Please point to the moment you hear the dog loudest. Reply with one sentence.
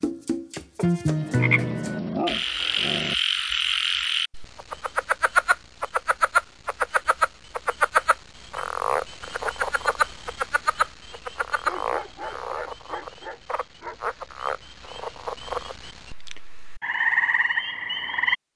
The volume of the dog peaks at 2 seconds.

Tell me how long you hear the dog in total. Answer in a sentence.
You can hear the dog for 5 seconds altogether.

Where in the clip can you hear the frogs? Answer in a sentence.
The frogs can be heard from 0.0 to 18.4 s.